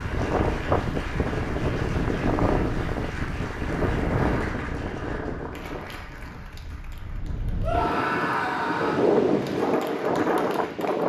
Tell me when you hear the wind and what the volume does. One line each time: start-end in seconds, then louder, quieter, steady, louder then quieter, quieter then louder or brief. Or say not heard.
0.0-11.0 quieter then louder.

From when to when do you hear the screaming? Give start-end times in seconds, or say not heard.
7.6-9.1.